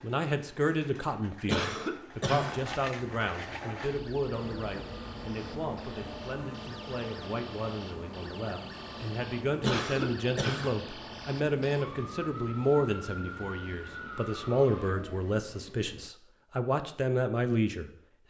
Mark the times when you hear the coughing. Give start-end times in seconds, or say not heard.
1.4-2.6, 9.6-10.8.